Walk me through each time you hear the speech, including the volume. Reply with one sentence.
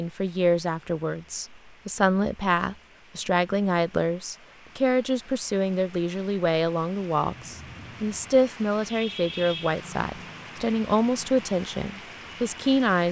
The speech can be heard from 0.0 to 13.0 s, at a steady volume.